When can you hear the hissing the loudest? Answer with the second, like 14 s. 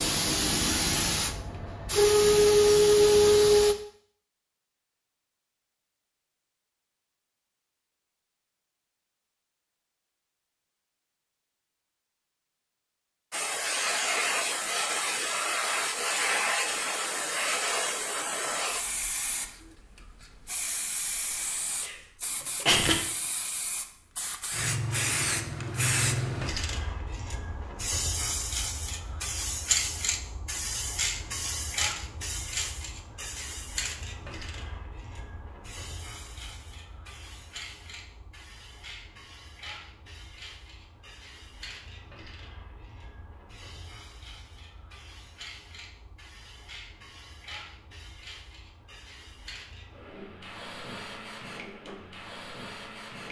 3 s.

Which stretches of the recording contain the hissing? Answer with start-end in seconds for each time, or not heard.
0.0-3.8, 13.3-53.2.